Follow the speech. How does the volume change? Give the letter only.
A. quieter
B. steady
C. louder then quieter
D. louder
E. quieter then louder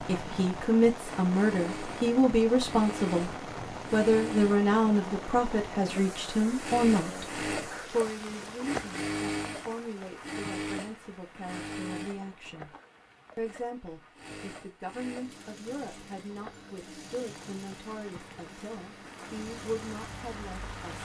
A.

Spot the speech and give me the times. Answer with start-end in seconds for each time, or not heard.
0.1-3.3, 3.9-7.2, 7.9-12.8, 13.3-20.8.